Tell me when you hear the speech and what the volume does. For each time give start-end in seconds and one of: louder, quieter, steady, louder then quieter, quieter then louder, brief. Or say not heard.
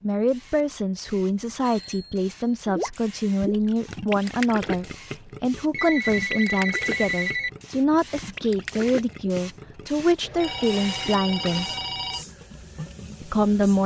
0.0-11.7 steady
13.2-13.8 brief.